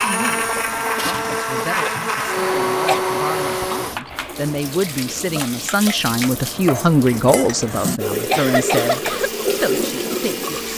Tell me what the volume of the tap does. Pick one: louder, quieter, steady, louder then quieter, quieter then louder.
louder.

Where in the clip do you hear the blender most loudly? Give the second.
3 s.